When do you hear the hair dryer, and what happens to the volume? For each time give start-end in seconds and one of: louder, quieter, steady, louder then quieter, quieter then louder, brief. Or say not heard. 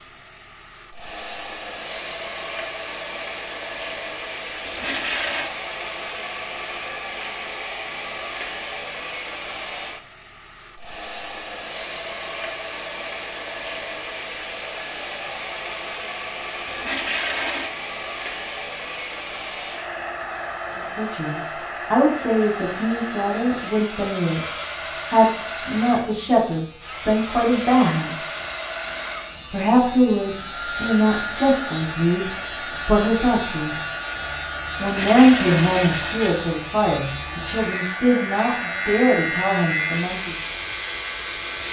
0.0-41.6 steady.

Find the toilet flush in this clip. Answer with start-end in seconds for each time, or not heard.
4.7-5.5, 16.6-17.7, 34.8-36.5.